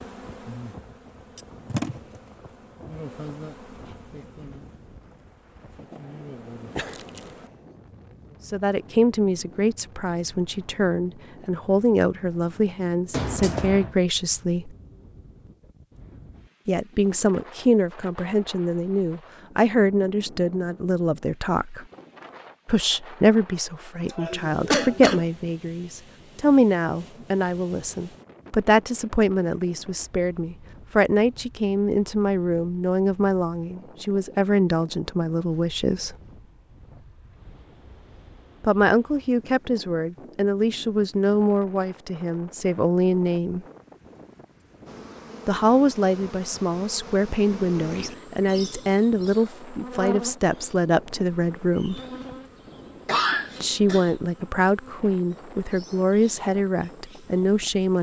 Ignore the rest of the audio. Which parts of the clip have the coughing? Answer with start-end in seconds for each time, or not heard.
13.1-13.9, 24.1-25.2, 53.0-54.1.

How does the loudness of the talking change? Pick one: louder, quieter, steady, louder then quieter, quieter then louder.
steady.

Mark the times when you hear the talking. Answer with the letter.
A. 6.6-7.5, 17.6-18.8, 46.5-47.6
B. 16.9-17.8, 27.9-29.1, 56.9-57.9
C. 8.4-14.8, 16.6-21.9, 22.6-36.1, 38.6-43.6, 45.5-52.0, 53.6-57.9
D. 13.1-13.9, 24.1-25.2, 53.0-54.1
C.